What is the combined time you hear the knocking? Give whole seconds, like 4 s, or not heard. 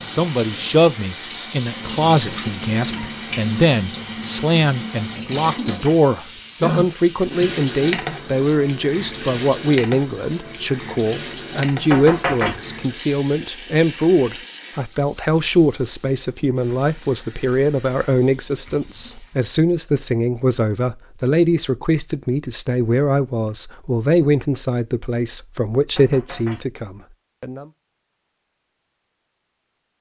2 s.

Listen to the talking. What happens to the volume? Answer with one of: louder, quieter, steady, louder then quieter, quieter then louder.
steady.